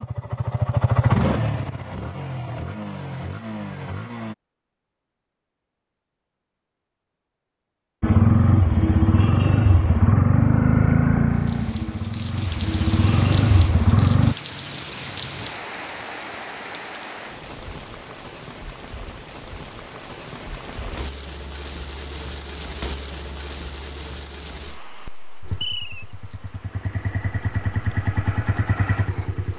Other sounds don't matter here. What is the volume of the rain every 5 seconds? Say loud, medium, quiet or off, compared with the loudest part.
off, off, loud, loud, loud, quiet.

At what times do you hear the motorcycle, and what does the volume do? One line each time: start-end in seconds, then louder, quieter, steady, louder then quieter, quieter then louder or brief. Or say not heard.
0.0-4.3 quieter
8.0-14.3 quieter then louder
25.4-29.5 louder.